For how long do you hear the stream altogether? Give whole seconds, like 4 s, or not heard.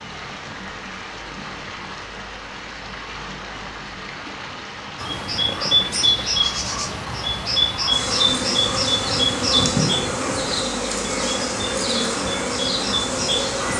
14 s.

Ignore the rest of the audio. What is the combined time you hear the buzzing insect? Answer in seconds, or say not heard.
6 s.